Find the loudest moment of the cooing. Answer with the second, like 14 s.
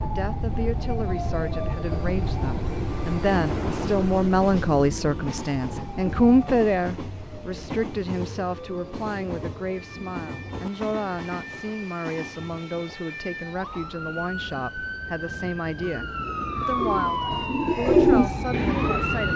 18 s.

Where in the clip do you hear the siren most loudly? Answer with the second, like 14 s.
17 s.